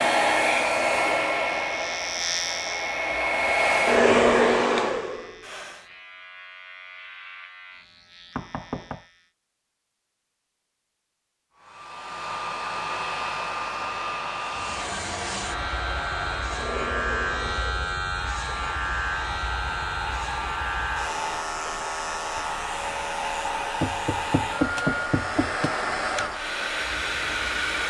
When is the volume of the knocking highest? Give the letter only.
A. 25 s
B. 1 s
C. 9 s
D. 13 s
A.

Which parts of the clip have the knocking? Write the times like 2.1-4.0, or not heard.
8.3-9.1, 23.8-25.8.